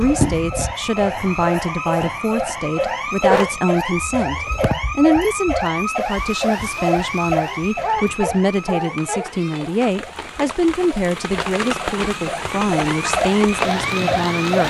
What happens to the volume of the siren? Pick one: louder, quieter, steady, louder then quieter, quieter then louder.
quieter then louder.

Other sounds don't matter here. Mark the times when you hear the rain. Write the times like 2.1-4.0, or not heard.
5.8-14.6.